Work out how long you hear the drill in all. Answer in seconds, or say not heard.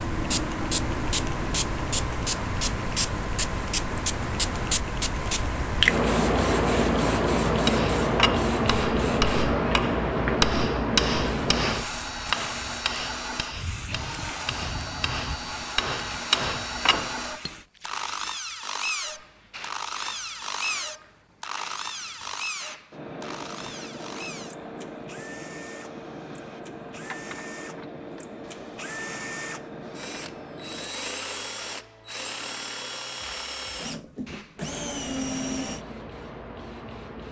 24 s.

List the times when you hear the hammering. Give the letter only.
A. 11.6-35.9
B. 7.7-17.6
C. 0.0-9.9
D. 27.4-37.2
B.